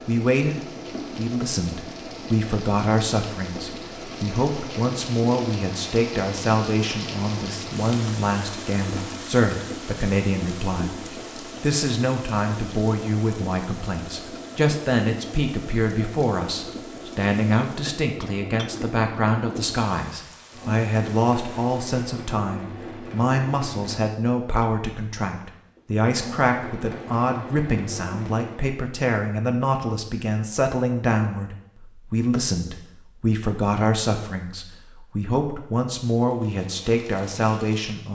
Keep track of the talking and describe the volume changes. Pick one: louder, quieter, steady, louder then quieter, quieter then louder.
steady.